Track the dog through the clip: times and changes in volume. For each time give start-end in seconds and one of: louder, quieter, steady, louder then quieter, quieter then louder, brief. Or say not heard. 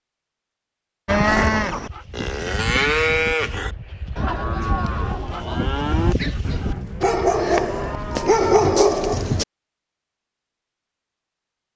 1.8-9.4 louder.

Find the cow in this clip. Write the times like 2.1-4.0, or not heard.
1.1-8.7.